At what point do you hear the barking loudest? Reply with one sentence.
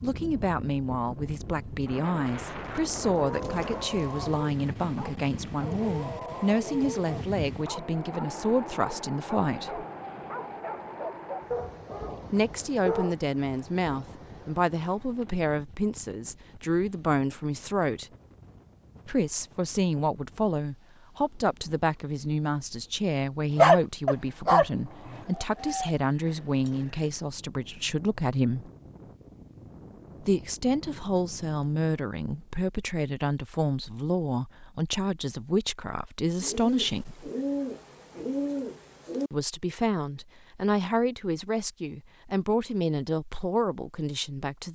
The volume of the barking peaks at 24 seconds.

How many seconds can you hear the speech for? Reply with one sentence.
The speech can be heard for 38 seconds in total.